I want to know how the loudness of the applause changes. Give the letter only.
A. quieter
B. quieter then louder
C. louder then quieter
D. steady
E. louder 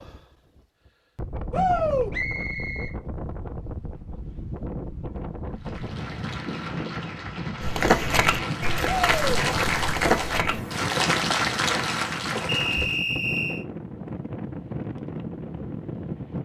E.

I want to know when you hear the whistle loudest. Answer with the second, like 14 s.
13 s.